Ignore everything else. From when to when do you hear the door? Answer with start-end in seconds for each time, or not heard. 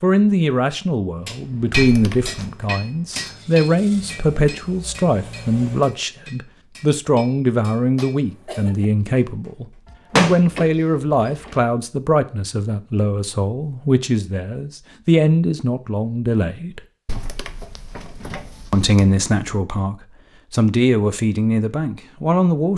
1.7-2.4, 9.9-11.7, 17.1-19.6.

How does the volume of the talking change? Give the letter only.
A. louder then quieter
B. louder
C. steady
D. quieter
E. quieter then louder
C.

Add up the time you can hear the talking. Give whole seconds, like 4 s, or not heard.
21 s.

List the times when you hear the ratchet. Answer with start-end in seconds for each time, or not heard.
not heard.